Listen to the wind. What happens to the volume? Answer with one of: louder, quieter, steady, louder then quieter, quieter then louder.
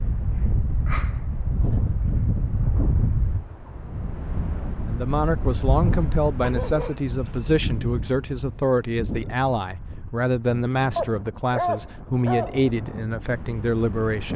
quieter.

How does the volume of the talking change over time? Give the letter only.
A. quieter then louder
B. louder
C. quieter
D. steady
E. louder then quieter
D.